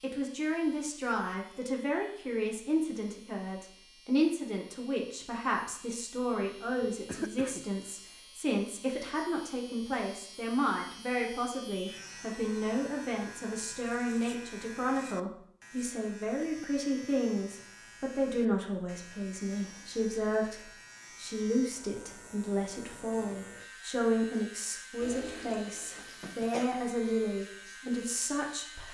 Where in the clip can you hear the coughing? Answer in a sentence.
The coughing can be heard from 6.8 to 7.7 s and from 25.9 to 26.8 s.